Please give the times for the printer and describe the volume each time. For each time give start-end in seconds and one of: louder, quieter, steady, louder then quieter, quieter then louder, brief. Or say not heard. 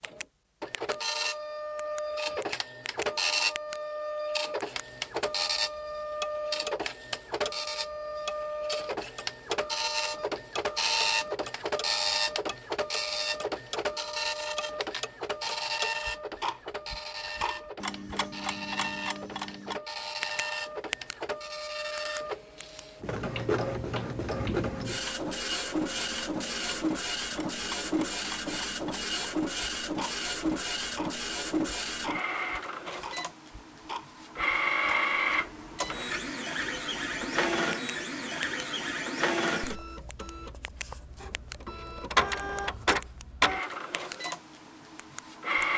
0.0-45.7 steady.